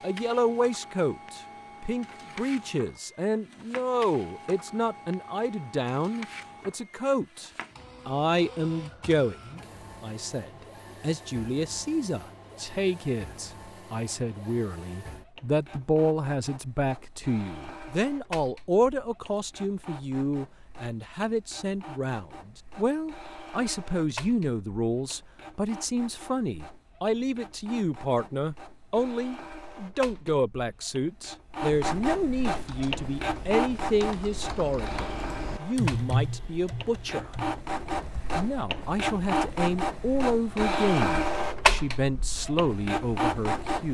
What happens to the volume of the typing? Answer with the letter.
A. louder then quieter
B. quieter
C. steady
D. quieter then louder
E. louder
A.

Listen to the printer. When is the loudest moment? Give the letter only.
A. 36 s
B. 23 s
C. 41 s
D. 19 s
C.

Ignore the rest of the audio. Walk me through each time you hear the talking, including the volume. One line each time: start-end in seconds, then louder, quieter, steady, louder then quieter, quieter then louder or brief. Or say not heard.
0.0-43.8 steady.